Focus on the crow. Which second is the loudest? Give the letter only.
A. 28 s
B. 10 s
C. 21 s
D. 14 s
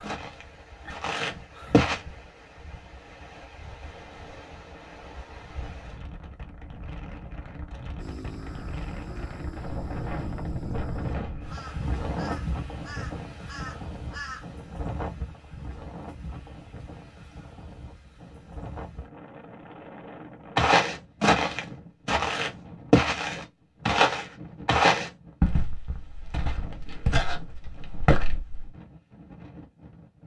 D.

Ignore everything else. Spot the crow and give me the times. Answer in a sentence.
You can hear the crow from 8.0 to 14.4 s.